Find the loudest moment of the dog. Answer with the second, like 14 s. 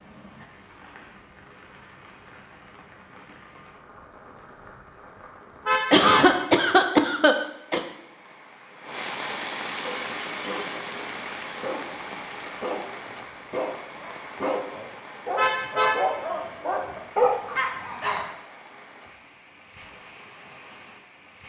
17 s.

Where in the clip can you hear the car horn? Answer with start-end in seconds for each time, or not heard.
5.7-6.5, 15.3-16.2.